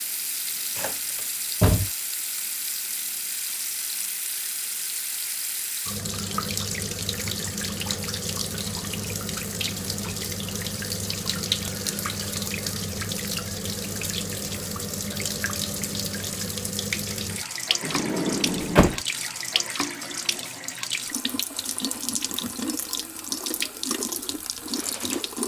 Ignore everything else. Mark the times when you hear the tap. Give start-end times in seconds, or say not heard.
0.0-25.4.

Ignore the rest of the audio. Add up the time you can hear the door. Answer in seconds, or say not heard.
2 s.